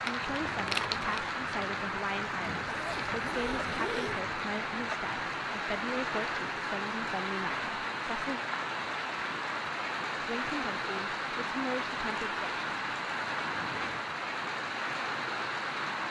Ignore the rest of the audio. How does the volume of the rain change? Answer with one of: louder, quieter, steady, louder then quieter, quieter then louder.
steady.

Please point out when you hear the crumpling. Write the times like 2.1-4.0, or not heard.
0.0-1.2.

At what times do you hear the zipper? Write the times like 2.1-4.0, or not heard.
2.6-4.2.